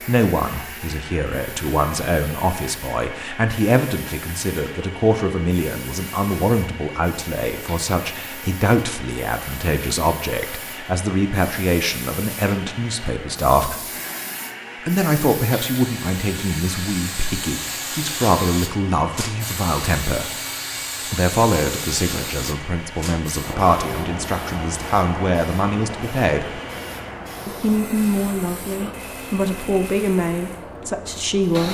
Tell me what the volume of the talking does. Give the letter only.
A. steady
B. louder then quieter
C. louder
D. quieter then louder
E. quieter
A.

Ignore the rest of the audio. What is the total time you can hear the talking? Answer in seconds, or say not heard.
29 s.